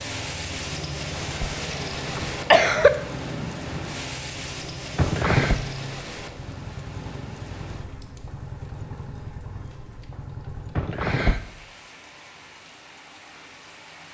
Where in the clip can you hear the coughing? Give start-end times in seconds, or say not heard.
0.9-2.9, 5.0-5.6, 10.8-11.4.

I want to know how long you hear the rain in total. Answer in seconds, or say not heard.
14 s.